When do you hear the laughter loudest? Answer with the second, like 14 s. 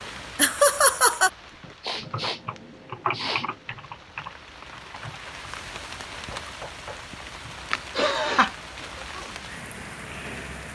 1 s.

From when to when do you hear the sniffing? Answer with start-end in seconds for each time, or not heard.
1.8-3.5, 8.0-8.9.